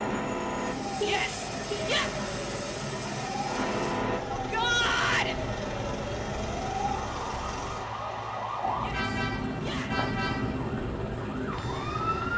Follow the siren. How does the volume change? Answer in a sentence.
The volume of the siren stays about the same.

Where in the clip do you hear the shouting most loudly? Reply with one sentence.
The volume of the shouting peaks at 5 seconds.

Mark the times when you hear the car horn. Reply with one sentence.
The car horn can be heard from 1.0 to 1.9 s and from 8.9 to 10.6 s.